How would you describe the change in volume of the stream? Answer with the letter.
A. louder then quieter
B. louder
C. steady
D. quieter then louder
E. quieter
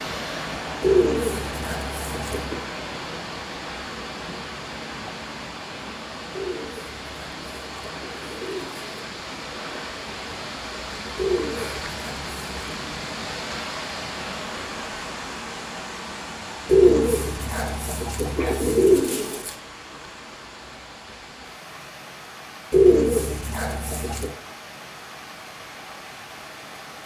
E.